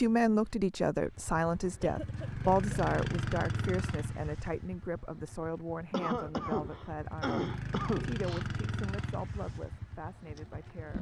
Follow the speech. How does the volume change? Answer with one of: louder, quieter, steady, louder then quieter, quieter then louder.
quieter.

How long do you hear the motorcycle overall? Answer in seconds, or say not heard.
11 s.